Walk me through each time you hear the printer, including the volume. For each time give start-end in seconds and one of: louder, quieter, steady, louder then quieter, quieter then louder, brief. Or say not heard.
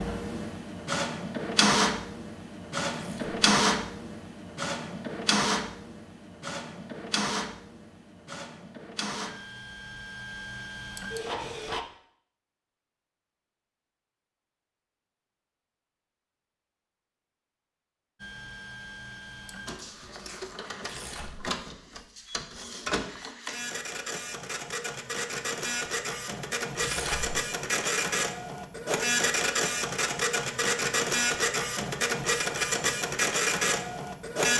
0.0-11.8 quieter
18.2-34.5 louder.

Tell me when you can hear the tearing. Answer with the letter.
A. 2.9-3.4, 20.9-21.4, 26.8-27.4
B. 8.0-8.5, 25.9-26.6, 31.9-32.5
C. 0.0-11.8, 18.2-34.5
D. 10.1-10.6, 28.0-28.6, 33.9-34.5
A.